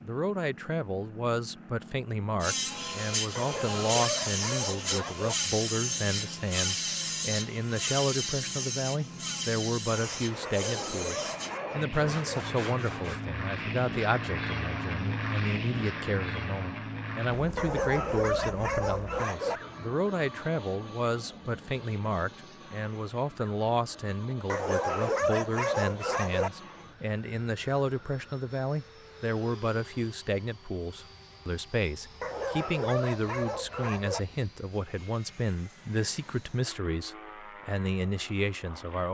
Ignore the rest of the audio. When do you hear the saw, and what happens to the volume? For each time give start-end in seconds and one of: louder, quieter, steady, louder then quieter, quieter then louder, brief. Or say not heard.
2.4-13.2 quieter.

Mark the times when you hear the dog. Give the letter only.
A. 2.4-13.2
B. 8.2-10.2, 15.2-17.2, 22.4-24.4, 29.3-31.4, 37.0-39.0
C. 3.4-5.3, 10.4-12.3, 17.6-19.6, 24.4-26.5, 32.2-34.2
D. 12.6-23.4
C.